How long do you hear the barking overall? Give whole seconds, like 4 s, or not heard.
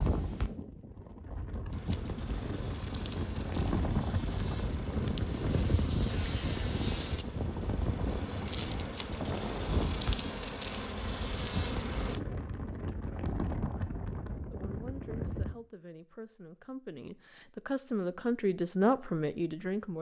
not heard.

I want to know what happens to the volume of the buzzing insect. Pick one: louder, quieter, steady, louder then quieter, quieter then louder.
louder.